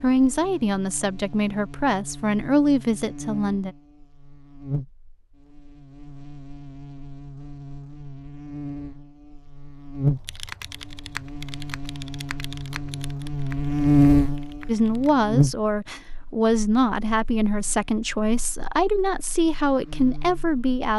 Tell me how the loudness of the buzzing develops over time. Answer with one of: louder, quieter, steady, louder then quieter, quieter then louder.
louder then quieter.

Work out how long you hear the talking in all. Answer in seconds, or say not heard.
10 s.